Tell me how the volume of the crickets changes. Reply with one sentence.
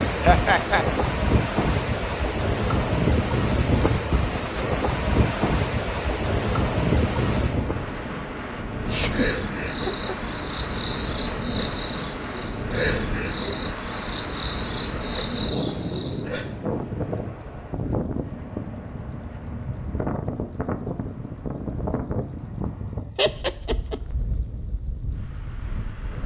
The volume of the crickets goes up.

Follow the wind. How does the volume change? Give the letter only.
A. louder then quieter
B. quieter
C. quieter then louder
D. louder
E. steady
B.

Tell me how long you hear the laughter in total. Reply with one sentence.
You can hear the laughter for 3 seconds altogether.